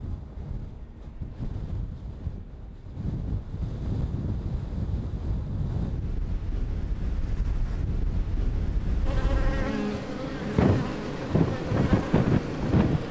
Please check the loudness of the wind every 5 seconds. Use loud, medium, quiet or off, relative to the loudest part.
medium, medium, loud.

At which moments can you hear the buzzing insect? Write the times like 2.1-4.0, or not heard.
9.1-13.0.